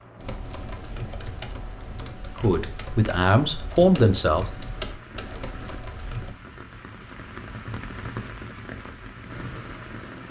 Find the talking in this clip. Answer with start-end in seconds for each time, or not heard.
2.4-4.5.